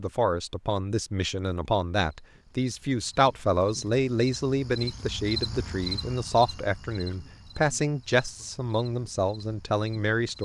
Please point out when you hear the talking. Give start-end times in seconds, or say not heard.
0.0-10.4.